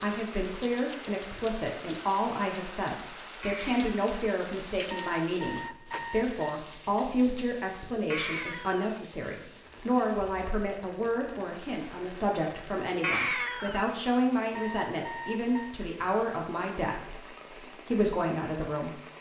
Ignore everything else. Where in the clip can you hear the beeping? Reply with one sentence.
You can hear the beeping from 4.9 to 6.4 s and from 14.5 to 15.8 s.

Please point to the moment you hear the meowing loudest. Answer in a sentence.
The loudest moment of the meowing is at 13 seconds.